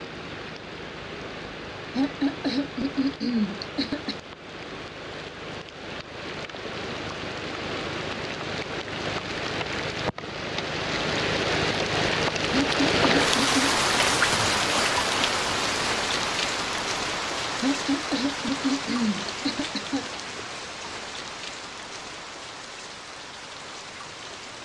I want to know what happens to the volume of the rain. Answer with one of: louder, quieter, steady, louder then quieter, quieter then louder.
louder then quieter.